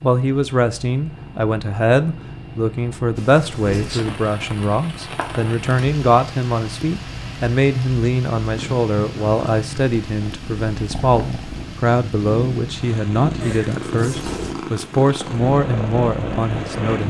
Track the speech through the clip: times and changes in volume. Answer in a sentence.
The speech can be heard from 0.0 to 17.0 s, at a steady volume.